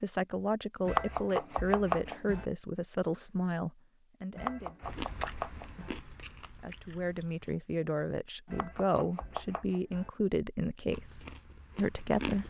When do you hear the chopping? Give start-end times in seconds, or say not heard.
0.8-2.5, 4.3-6.0, 8.4-10.1.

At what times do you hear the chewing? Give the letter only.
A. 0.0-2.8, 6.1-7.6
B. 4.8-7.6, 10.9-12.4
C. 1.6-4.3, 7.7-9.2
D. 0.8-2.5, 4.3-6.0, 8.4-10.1
B.